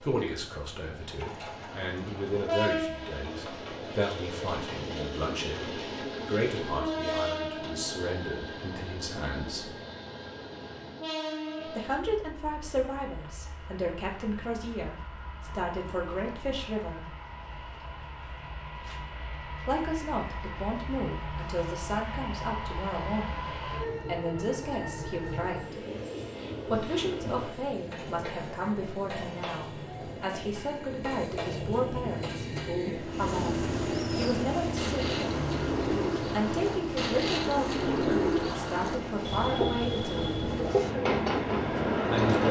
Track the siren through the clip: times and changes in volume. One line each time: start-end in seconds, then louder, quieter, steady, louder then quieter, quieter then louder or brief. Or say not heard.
not heard.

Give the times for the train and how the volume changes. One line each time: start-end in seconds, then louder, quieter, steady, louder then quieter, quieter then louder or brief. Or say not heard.
0.0-42.4 quieter then louder.